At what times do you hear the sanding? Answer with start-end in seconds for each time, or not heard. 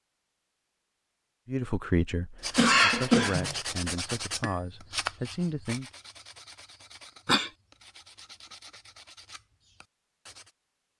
2.4-10.6.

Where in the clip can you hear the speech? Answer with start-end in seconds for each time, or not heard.
1.4-5.9.